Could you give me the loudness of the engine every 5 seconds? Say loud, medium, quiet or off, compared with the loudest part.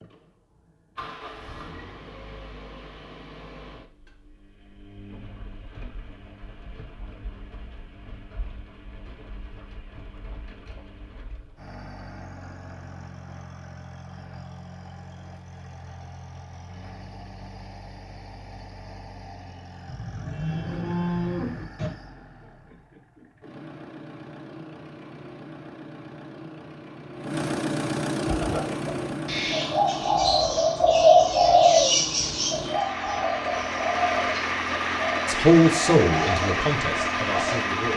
quiet, quiet, quiet, quiet, quiet, medium, medium, loud.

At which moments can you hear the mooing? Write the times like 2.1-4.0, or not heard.
19.9-21.9.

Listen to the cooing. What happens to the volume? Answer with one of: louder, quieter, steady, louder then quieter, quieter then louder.
louder then quieter.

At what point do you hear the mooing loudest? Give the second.
21 s.